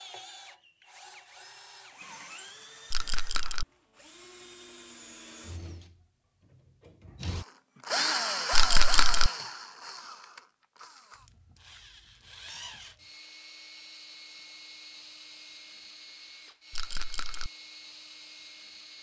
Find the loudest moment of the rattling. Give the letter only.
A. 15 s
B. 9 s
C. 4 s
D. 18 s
B.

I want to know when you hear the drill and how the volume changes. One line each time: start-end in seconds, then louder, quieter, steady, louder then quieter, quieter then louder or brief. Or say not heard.
0.0-18.9 louder then quieter.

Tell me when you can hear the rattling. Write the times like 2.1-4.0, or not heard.
2.9-3.6, 8.5-9.3, 16.7-17.5.